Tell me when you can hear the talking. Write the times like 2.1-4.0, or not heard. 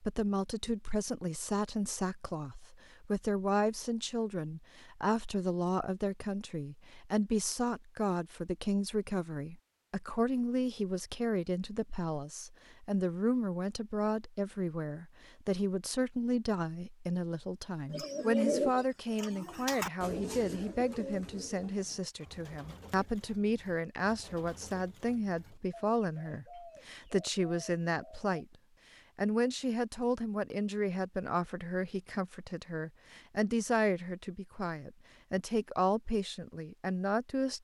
0.0-28.4, 29.1-37.5.